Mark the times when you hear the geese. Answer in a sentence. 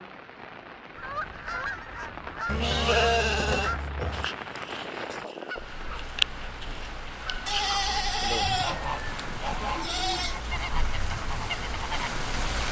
You can hear the geese from 0.9 to 12.1 s.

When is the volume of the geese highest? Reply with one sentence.
The loudest moment of the geese is at 6 seconds.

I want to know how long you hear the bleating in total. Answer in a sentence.
The bleating can be heard for 5 seconds in total.